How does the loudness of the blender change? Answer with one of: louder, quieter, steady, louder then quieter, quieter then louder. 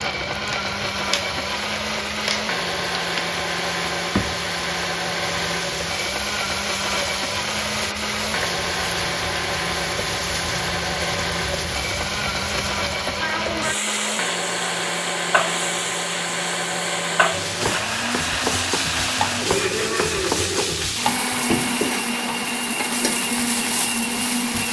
steady.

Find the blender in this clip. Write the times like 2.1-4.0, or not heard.
0.0-24.6.